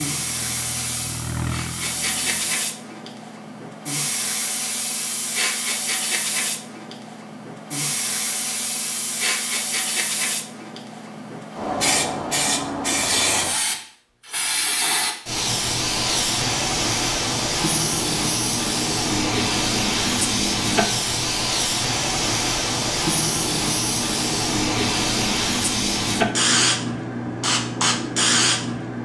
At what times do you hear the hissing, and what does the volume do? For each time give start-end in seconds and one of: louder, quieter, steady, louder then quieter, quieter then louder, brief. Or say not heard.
0.0-28.9 louder.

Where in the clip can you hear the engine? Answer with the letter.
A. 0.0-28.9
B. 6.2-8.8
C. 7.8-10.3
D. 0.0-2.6
D.